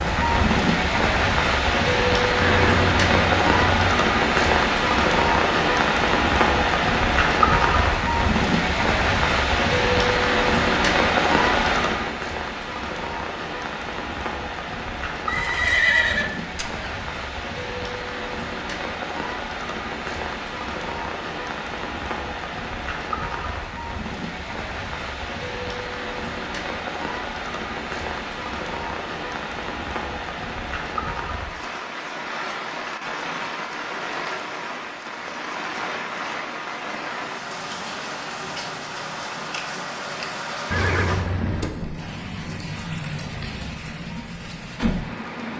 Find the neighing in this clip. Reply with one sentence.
The neighing can be heard from 2.4 to 3.9 s, from 15.2 to 16.9 s and from 40.7 to 41.8 s.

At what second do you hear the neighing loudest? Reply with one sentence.
The loudest moment of the neighing is at 16 seconds.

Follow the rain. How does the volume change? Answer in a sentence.
The volume of the rain goes down.